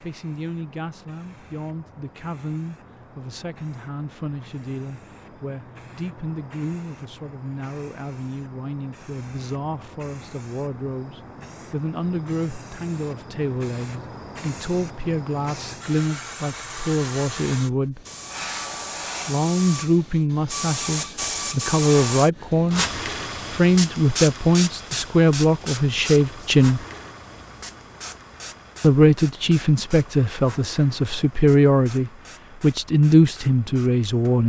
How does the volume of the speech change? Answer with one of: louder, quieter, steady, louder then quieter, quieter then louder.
louder.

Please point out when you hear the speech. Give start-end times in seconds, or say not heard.
0.0-18.0, 19.2-26.8, 28.8-34.4.